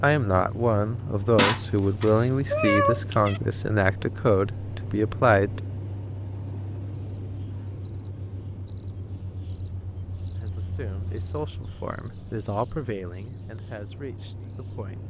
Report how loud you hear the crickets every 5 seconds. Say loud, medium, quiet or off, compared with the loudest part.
off, loud, loud.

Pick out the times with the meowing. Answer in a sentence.
You can hear the meowing from 1.4 to 3.4 s.